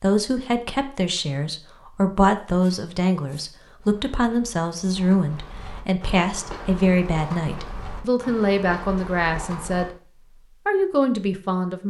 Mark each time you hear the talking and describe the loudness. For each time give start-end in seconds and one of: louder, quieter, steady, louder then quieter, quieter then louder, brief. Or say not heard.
0.0-11.8 steady.